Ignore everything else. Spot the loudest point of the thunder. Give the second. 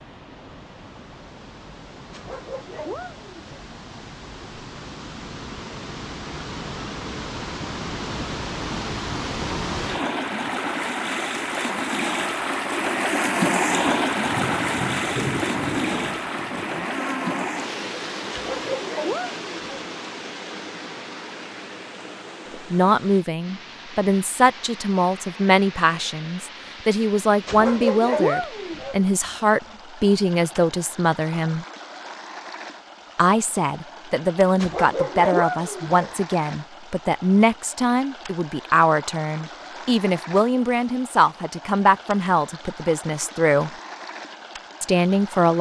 15 s.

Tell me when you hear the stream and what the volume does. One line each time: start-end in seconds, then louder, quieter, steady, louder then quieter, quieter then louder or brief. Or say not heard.
0.0-45.5 louder then quieter.